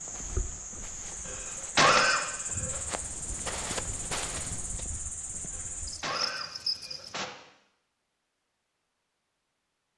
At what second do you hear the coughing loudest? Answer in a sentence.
The volume of the coughing peaks at 2 seconds.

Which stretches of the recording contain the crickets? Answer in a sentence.
The crickets can be heard from 0.0 to 7.2 s.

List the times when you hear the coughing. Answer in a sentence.
The coughing can be heard from 1.2 to 2.8 s and from 5.5 to 7.2 s.